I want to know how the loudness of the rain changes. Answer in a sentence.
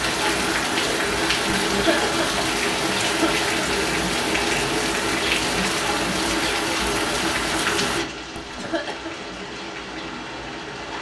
The volume of the rain goes down.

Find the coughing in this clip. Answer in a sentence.
You can hear the coughing from 1.6 to 3.5 s and from 8.3 to 9.1 s.